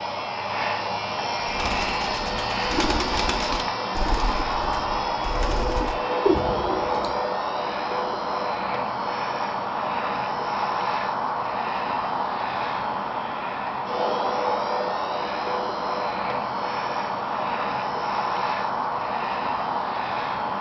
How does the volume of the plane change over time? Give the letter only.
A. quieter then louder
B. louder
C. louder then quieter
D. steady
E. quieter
D.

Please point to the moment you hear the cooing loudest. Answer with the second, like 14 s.
6 s.